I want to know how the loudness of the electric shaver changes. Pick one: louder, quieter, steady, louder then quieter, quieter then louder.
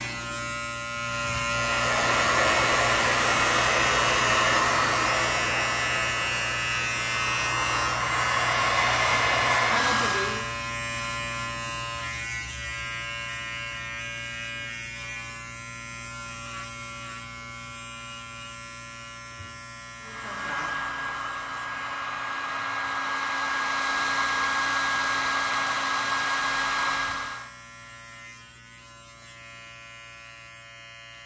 quieter.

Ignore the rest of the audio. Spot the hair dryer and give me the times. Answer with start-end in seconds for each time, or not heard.
1.5-10.5, 20.0-27.5.